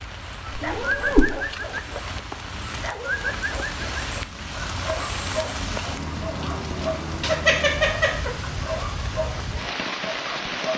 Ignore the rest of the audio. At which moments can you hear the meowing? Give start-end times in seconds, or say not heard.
0.6-1.4, 7.2-8.3.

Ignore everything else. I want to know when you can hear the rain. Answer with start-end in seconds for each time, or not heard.
0.0-10.7.